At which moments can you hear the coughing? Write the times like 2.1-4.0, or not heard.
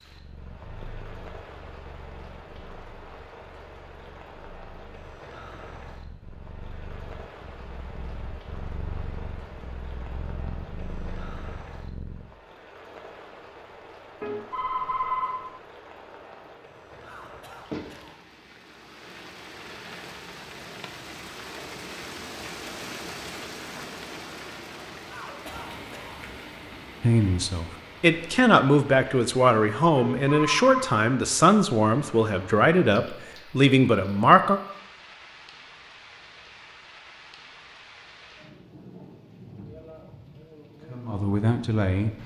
17.0-18.1, 25.1-26.2.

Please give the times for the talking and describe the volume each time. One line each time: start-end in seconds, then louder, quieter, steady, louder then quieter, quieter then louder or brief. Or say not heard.
27.0-34.6 steady
40.8-42.1 brief.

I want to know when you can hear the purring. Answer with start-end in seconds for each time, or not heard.
0.0-12.3.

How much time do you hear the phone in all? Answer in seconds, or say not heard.
2 s.